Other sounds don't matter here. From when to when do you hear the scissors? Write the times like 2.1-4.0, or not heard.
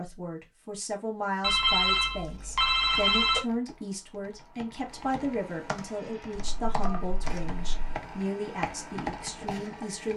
not heard.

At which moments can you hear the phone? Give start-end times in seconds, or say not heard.
1.4-3.4, 6.3-8.0.